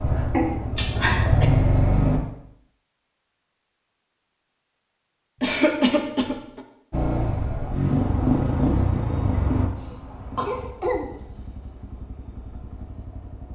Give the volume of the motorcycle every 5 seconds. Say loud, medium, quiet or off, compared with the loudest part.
loud, loud, quiet.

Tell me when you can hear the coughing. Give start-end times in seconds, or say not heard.
0.3-1.5, 5.4-6.6, 9.3-11.1.